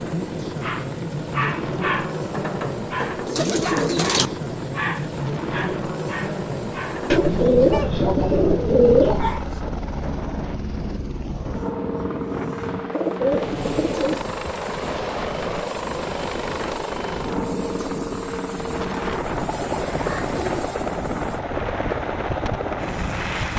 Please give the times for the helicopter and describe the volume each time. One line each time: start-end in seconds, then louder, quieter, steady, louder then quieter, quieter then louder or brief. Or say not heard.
0.0-23.5 steady.